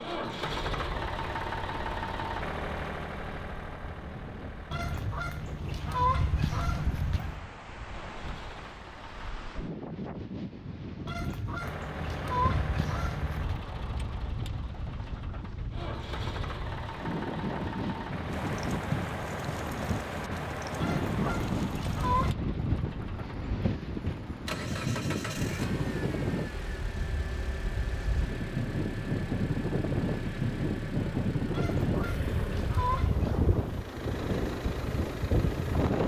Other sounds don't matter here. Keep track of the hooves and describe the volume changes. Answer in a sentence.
The volume of the hooves goes down.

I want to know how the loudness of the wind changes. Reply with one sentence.
The volume of the wind goes up.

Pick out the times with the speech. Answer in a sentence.
You can't hear the speech here.